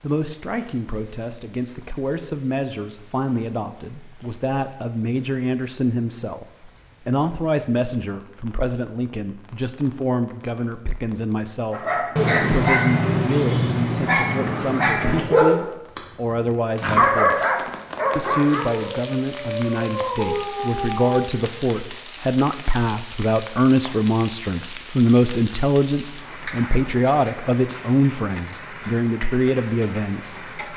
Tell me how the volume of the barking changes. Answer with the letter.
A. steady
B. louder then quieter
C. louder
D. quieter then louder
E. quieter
E.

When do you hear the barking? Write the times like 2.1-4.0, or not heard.
11.7-21.2.